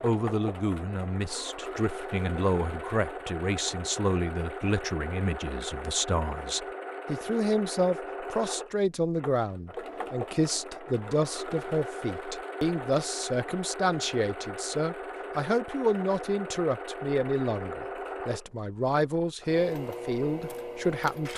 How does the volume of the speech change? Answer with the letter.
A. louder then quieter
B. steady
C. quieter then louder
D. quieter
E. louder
B.